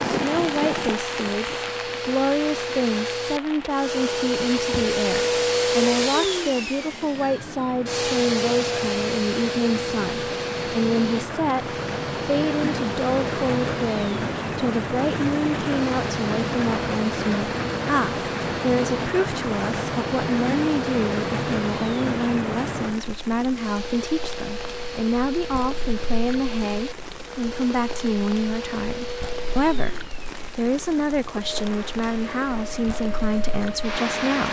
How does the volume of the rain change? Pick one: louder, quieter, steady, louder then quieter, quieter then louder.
louder then quieter.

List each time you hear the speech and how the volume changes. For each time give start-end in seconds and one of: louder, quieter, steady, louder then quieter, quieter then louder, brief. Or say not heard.
0.1-34.4 steady.